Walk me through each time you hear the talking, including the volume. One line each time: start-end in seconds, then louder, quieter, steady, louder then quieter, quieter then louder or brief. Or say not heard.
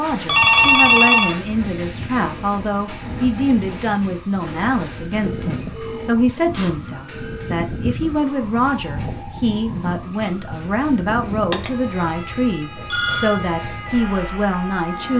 0.0-15.1 steady.